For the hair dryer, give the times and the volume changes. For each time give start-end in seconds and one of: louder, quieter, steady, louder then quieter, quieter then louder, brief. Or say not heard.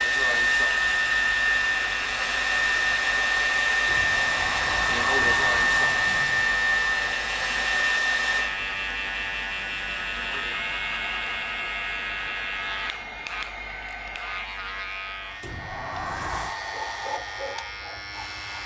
0.0-18.6 quieter.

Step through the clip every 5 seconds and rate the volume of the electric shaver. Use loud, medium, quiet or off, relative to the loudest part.
loud, loud, loud, medium.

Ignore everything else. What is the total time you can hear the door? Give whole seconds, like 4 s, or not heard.
4 s.